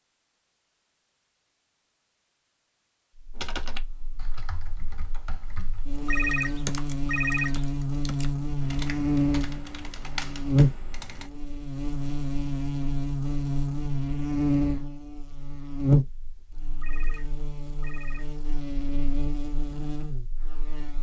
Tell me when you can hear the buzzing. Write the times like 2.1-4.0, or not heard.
3.1-20.9.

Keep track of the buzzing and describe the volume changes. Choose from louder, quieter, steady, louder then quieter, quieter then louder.
louder then quieter.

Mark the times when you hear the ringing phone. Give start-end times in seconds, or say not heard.
6.0-7.8, 16.8-18.4.